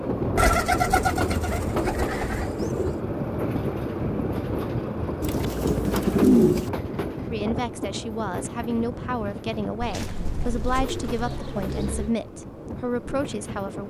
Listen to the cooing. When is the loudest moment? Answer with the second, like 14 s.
6 s.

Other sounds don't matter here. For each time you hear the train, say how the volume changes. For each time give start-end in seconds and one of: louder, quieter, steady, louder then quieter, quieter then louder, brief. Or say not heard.
0.0-13.8 quieter.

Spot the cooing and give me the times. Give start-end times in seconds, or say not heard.
0.3-3.0, 5.2-6.7, 9.8-12.2.